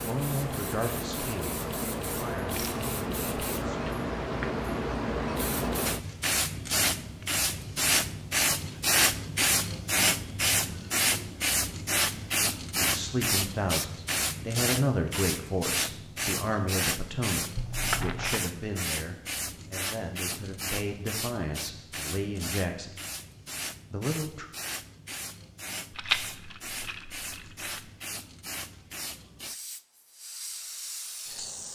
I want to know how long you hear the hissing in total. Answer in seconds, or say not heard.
32 s.